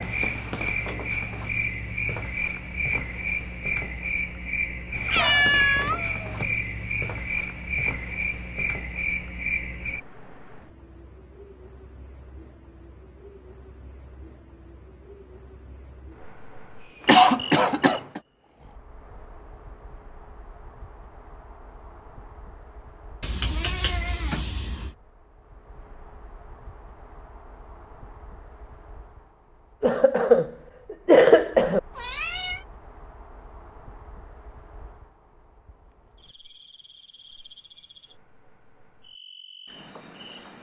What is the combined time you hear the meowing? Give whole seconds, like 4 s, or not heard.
4 s.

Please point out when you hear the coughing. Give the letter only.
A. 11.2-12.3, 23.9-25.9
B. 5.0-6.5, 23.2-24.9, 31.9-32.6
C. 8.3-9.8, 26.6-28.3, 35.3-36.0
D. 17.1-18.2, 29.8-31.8
D.